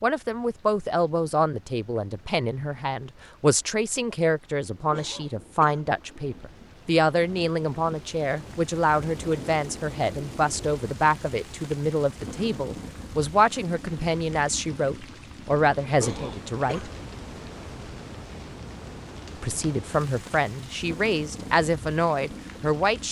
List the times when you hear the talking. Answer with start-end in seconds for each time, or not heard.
0.0-16.9, 19.4-23.0.